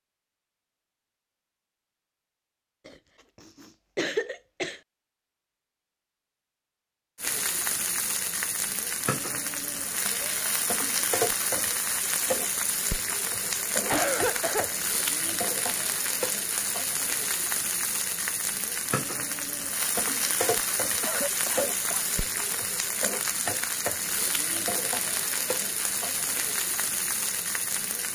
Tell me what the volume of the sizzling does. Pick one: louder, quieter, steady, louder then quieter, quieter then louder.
steady.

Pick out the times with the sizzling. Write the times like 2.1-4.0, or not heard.
7.2-28.1.